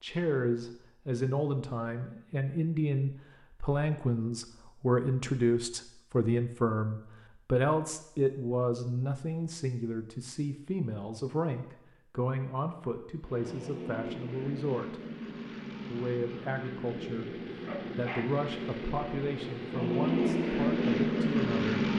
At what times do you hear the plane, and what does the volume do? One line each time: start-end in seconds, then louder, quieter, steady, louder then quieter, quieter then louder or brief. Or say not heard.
13.2-21.9 louder.